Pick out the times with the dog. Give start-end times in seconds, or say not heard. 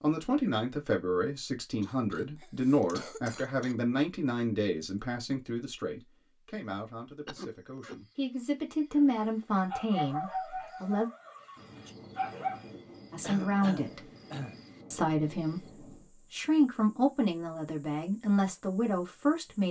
8.9-12.7.